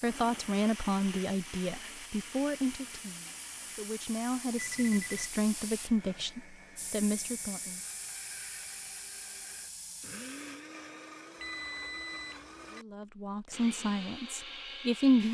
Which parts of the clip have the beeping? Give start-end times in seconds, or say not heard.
4.5-5.3, 11.4-12.8.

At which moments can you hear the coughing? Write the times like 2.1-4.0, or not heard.
not heard.